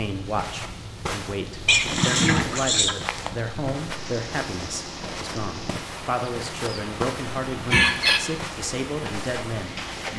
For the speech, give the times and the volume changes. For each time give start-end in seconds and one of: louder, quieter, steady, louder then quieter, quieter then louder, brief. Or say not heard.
0.0-10.1 steady.